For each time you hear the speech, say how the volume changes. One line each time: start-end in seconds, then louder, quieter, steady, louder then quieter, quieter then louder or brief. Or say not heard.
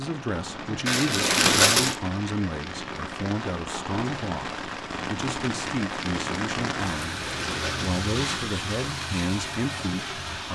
0.0-10.5 steady.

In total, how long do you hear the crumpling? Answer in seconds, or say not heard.
3 s.